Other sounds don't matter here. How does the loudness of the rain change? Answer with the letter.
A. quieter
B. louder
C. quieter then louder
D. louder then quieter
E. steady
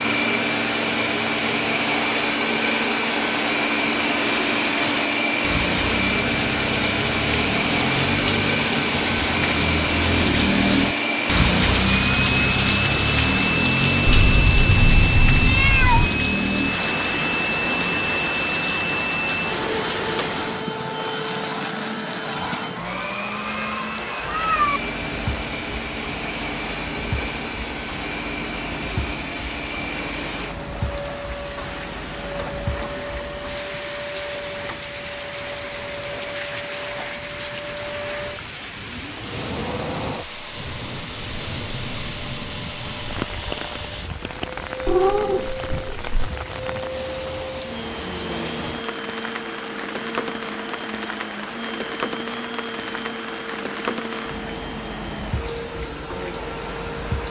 A.